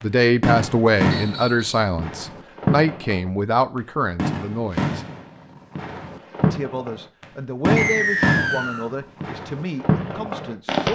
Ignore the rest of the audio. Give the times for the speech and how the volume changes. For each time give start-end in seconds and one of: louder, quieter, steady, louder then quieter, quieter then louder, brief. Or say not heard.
0.0-5.0 quieter
6.4-10.9 louder then quieter.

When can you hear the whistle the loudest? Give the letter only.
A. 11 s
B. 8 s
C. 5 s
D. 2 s
B.